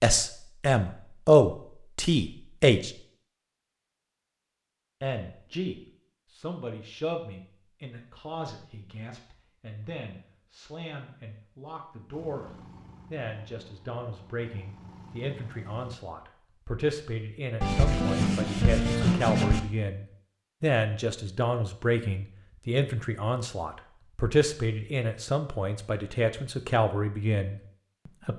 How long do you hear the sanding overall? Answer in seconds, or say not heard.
2 s.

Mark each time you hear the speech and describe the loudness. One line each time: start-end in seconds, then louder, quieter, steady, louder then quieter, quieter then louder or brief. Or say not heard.
0.0-2.9 brief
5.0-28.3 louder.